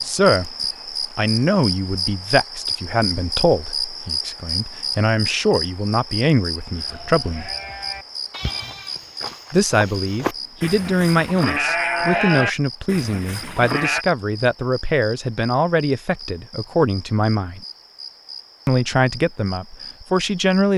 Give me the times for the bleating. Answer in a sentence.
You can hear the bleating from 6.7 to 14.1 s.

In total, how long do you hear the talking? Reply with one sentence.
You can hear the talking for 18 seconds altogether.